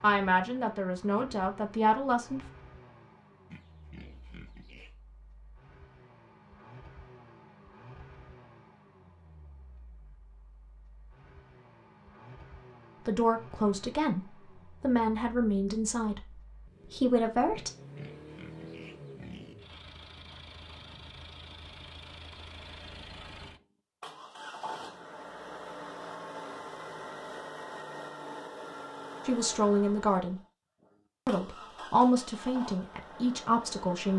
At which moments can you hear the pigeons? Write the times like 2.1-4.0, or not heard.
not heard.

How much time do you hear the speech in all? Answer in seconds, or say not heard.
11 s.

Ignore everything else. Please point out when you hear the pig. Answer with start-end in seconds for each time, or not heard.
3.5-5.0, 17.5-19.6.